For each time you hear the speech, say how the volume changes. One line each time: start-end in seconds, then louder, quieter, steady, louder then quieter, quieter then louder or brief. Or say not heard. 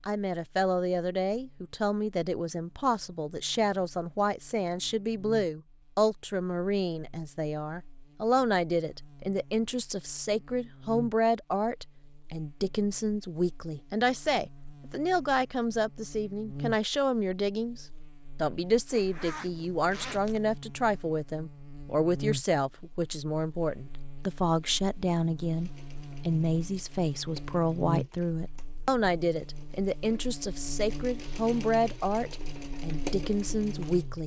0.1-34.2 steady.